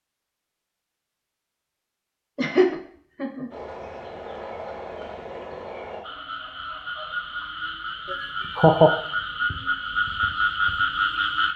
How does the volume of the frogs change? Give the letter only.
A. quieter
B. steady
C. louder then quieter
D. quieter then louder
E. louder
E.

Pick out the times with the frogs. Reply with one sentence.
The frogs can be heard from 3.5 to 11.5 s.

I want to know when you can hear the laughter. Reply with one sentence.
You can hear the laughter from 2.4 to 3.5 s and from 8.1 to 8.9 s.